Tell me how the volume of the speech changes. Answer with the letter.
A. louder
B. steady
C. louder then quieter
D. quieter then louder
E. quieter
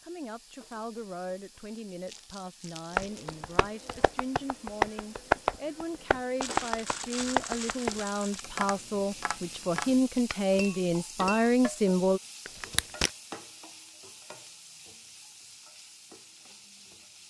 A.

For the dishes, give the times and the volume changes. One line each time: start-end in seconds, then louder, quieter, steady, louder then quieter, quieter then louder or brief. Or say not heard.
not heard.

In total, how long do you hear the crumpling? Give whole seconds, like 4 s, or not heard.
5 s.